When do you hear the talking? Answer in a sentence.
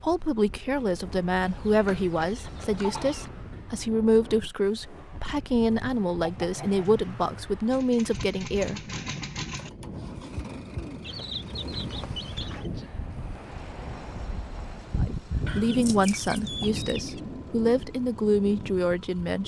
The talking can be heard from 0.0 to 8.8 s and from 15.0 to 19.4 s.